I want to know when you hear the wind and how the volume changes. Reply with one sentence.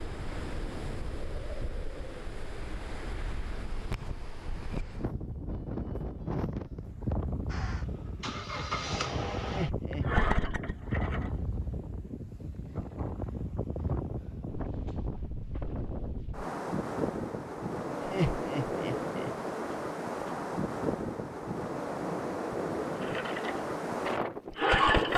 The wind can be heard from 0.0 to 25.1 s, getting louder.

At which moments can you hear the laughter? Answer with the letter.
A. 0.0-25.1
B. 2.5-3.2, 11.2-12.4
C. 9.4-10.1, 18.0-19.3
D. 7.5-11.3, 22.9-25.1
C.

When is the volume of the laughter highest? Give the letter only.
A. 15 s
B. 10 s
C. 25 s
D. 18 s
D.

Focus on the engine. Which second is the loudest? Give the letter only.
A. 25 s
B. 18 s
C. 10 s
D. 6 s
A.